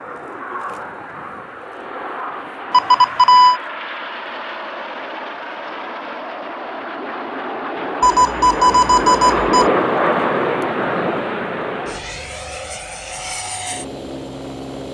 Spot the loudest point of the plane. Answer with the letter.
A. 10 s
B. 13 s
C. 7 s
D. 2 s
A.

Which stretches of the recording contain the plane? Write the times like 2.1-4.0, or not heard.
0.0-14.9.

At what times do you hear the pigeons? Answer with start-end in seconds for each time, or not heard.
not heard.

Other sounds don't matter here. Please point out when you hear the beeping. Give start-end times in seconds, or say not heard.
2.7-3.6, 8.0-9.7.